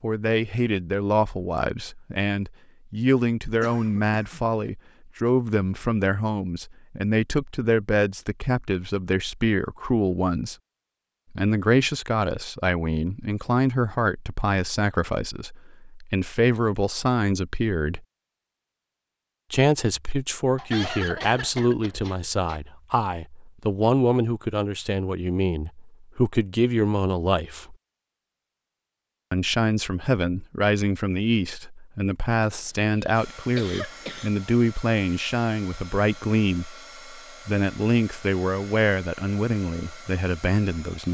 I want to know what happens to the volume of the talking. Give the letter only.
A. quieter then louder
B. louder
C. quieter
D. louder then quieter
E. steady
E.